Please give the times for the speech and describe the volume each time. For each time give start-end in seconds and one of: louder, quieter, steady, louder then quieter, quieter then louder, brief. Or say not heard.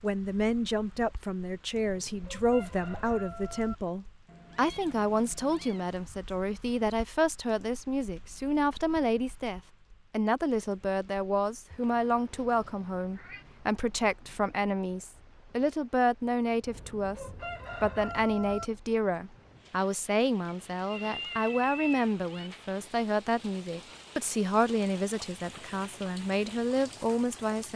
0.0-27.7 steady.